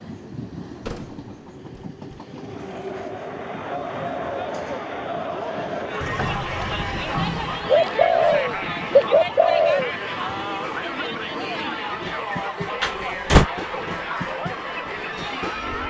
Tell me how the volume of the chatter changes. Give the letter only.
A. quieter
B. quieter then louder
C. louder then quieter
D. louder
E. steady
E.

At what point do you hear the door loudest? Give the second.
13 s.